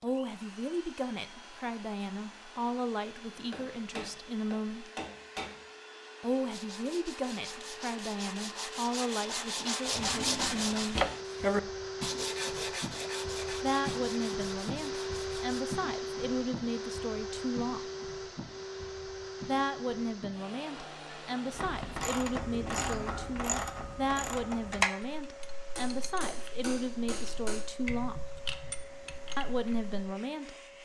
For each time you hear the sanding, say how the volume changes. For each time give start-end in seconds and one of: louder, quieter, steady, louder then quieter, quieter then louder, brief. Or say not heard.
6.5-15.6 louder then quieter.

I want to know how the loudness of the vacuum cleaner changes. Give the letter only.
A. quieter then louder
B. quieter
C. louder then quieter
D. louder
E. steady
C.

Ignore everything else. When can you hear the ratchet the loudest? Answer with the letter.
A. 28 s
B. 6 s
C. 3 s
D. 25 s
D.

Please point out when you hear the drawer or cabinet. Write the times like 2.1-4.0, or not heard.
9.8-11.1.